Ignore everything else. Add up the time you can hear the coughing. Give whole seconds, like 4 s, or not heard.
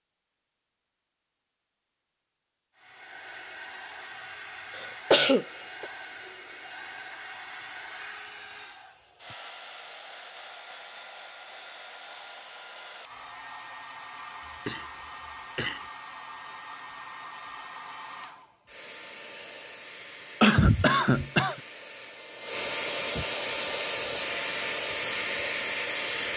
4 s.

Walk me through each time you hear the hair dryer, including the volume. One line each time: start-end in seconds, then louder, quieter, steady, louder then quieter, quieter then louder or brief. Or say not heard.
2.8-26.3 louder.